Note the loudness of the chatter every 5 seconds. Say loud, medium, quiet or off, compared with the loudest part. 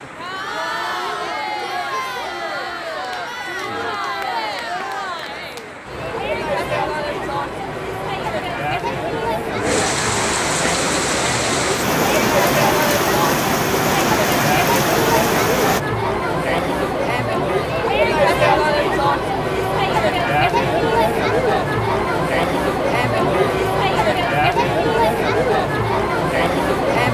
medium, medium, loud, loud, loud, loud.